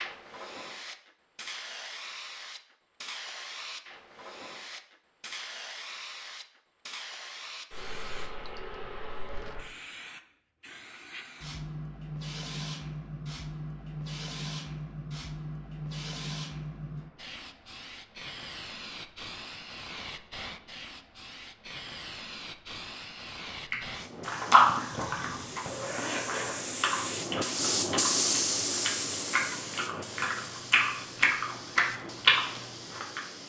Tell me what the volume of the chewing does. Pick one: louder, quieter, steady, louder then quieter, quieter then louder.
quieter then louder.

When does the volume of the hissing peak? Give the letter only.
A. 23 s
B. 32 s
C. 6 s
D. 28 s
D.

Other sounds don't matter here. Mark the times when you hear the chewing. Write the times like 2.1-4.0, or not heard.
23.7-33.2.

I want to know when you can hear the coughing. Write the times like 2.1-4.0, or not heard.
not heard.